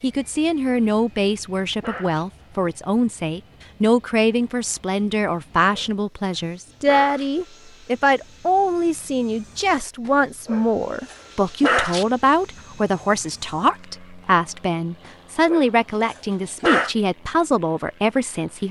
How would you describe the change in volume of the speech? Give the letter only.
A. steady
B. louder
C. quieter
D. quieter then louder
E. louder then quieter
A.